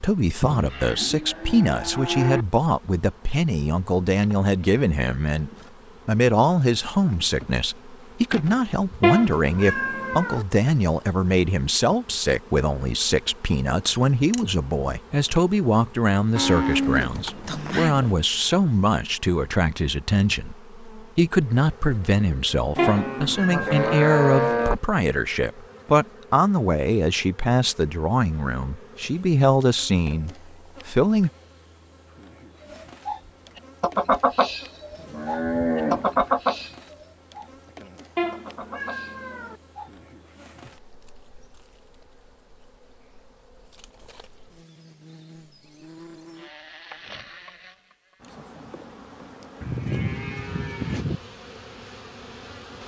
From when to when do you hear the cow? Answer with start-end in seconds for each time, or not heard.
0.4-2.5, 16.4-18.2, 22.8-24.8, 35.0-36.4, 49.6-51.2.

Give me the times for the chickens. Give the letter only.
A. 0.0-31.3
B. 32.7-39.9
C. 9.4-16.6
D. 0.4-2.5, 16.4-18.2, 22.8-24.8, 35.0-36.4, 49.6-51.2
B.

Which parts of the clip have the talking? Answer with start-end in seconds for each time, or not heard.
0.0-31.3.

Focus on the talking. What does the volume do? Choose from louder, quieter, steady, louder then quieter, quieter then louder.
steady.